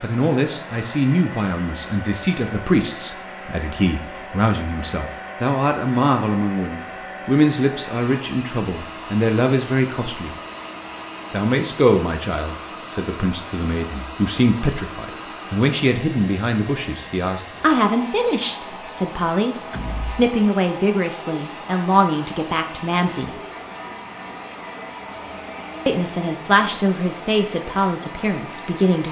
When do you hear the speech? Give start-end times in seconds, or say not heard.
0.0-10.3, 11.3-23.4, 25.9-29.0.